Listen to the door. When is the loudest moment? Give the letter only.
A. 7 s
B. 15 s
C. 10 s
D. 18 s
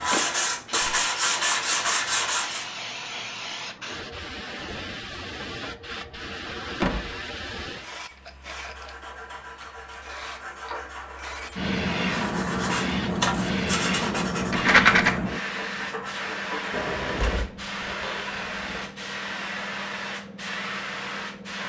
A.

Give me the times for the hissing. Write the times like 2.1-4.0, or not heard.
0.0-21.6.